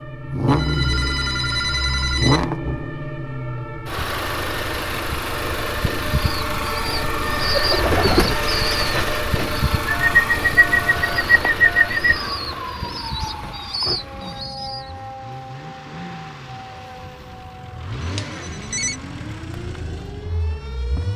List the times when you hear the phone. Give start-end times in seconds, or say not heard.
0.5-2.5, 9.9-11.9, 18.1-18.9.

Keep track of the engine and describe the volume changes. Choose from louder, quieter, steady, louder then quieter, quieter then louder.
quieter.